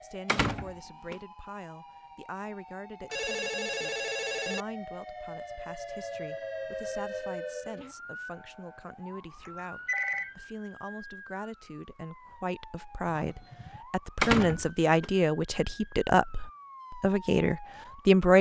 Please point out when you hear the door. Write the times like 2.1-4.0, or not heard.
0.2-1.1, 14.2-15.1.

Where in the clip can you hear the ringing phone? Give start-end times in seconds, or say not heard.
3.1-4.7, 9.4-10.3, 13.1-13.8.